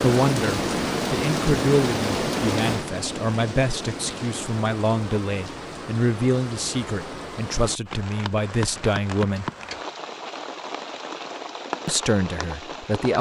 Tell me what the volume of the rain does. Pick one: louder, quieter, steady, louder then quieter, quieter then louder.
quieter.